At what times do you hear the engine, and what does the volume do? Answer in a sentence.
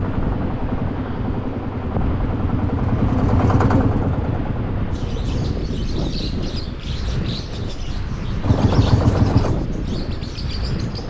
The engine can be heard from 0.0 to 5.6 s, getting louder then quieter; and briefly from 8.4 to 11.0 s.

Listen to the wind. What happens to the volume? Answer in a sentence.
The loudness of the wind stays about the same.